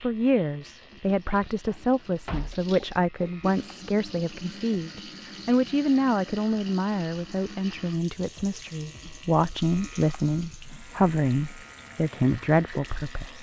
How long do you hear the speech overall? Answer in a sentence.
The speech can be heard for 13 seconds in total.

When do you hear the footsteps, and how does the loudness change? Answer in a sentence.
The footsteps can't be heard in this clip.